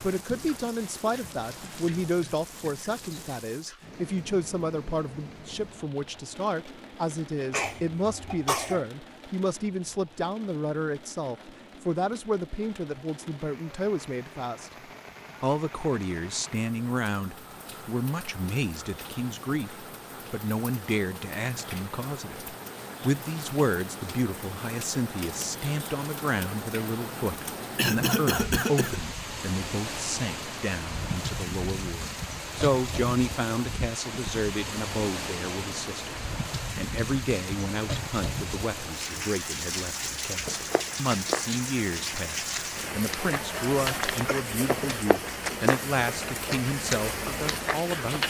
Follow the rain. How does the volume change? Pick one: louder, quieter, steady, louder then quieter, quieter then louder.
louder.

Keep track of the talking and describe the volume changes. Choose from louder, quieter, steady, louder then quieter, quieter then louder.
steady.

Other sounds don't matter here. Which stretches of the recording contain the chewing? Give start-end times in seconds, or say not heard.
40.5-48.2.